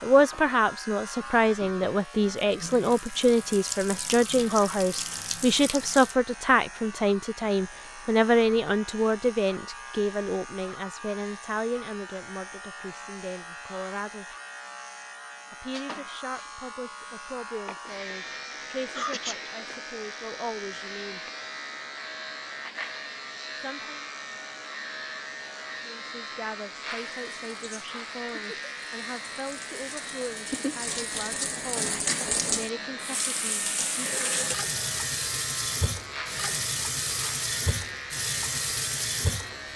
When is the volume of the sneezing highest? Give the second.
19 s.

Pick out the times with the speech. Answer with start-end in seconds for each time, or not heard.
0.0-14.3, 15.5-21.2, 23.6-24.0, 25.9-34.3.